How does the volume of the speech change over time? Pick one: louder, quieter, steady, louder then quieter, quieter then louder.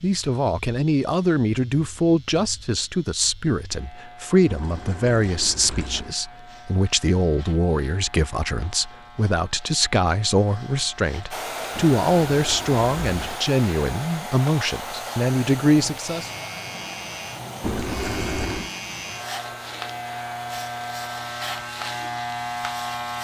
steady.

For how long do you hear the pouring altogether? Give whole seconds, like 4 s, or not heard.
4 s.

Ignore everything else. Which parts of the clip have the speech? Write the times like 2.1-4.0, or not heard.
0.0-16.3.